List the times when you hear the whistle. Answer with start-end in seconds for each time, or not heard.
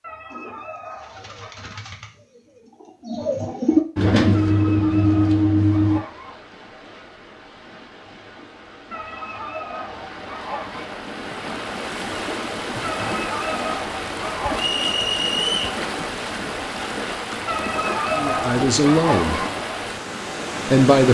14.6-15.8.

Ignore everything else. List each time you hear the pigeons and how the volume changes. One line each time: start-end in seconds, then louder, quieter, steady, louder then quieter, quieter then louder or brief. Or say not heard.
0.3-6.0 louder.